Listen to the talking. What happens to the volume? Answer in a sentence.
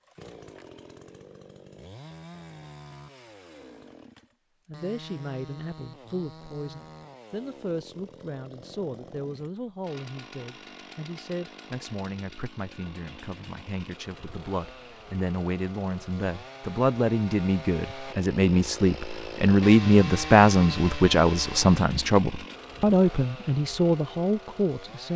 The volume of the talking goes up.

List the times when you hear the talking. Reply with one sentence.
The talking can be heard from 4.7 to 25.1 s.